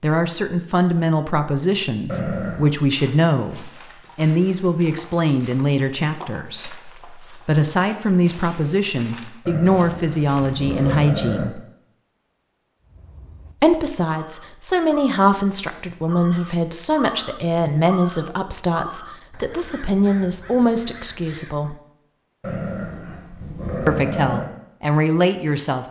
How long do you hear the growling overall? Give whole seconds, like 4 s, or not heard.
5 s.